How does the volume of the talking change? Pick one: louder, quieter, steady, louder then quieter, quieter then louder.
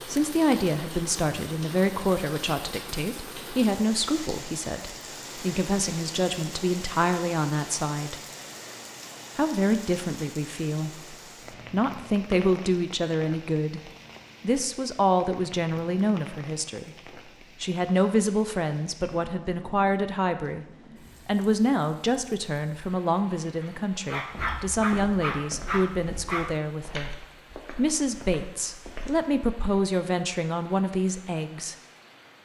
steady.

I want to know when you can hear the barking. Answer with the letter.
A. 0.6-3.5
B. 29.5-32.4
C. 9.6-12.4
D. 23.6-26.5
D.